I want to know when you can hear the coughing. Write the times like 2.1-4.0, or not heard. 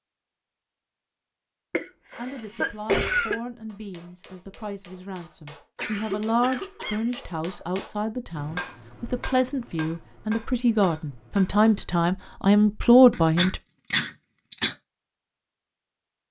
1.7-3.4, 5.8-7.1, 13.1-14.8.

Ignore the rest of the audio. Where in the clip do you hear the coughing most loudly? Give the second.
3 s.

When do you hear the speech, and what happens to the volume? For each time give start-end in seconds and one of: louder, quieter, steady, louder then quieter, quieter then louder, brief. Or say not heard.
2.1-13.6 louder.